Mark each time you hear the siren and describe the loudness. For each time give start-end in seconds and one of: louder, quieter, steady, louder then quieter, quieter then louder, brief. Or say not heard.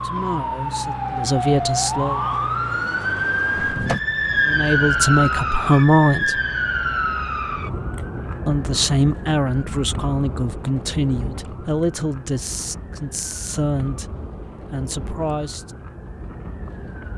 0.0-17.1 quieter.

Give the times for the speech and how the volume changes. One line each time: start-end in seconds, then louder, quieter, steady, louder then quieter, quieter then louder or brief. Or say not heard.
0.0-2.2 brief
4.5-6.4 brief
8.4-14.1 quieter
14.7-15.8 brief.